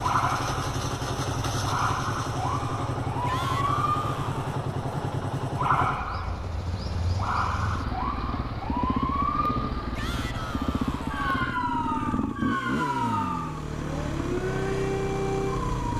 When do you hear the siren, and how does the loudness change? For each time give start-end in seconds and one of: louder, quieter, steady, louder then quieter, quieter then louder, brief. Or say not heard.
0.0-15.9 steady.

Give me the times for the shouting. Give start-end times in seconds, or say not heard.
3.2-4.7, 9.9-11.6.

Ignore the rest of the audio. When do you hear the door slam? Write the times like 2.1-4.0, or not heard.
not heard.